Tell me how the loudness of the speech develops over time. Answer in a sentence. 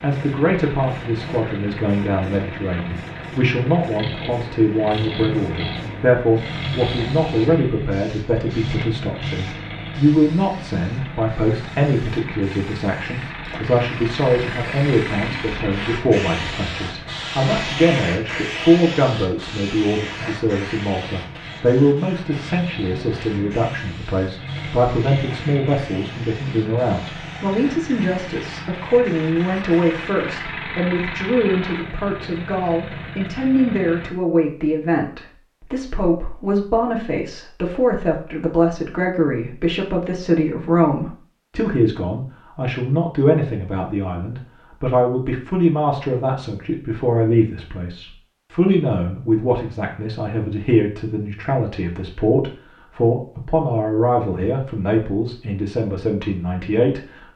The loudness of the speech stays about the same.